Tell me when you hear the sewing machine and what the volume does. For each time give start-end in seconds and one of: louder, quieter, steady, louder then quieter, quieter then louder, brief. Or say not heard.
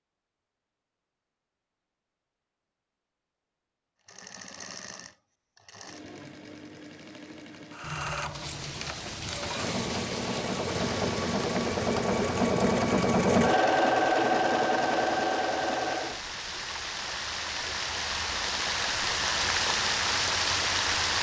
4.0-16.2 louder.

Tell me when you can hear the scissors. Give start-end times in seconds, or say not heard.
7.8-9.6.